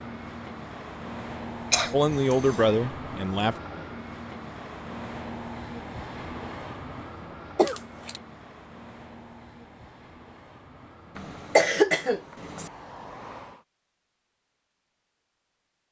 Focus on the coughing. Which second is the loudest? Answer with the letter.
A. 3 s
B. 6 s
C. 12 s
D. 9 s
C.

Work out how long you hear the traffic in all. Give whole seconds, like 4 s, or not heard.
14 s.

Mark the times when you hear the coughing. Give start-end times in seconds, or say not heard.
1.7-2.5, 7.5-8.2, 11.2-12.7.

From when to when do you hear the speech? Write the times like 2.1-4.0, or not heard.
1.9-3.5.